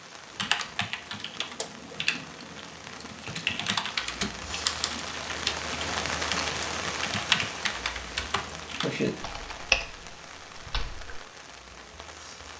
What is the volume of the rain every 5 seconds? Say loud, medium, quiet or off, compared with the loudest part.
medium, loud, medium.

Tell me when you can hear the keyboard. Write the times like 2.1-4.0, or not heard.
0.3-11.2.